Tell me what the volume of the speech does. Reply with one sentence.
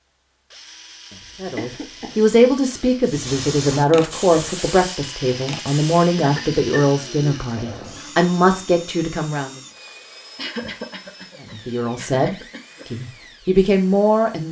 The volume of the speech stays about the same.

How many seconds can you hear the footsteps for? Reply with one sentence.
The footsteps can't be heard in this clip.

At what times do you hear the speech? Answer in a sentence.
You can hear the speech from 1.4 to 9.6 s and from 11.4 to 14.4 s.